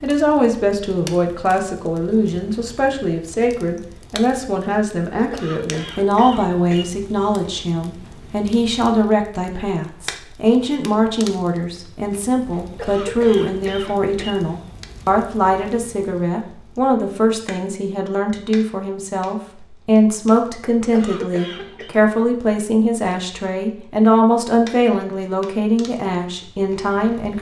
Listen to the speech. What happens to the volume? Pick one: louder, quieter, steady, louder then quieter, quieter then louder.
steady.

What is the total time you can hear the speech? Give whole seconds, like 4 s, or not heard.
27 s.